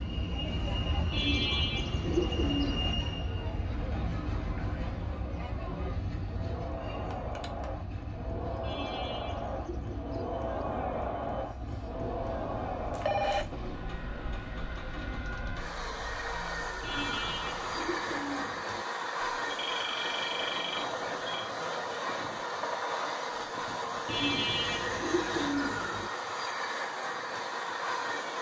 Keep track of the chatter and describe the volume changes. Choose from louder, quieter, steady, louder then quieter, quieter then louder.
louder then quieter.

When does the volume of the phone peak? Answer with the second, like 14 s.
13 s.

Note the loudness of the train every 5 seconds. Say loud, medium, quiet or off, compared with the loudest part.
loud, medium, medium, loud, loud, loud.